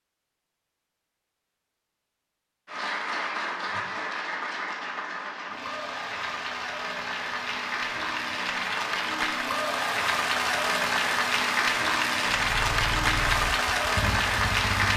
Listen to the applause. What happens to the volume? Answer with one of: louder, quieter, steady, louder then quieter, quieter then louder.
louder.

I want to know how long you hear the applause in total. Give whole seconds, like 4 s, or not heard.
12 s.